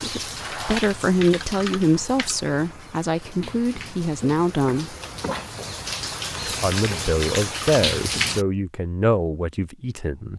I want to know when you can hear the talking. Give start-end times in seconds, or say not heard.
0.0-5.0, 6.5-10.3.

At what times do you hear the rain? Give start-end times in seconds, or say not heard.
0.0-8.4.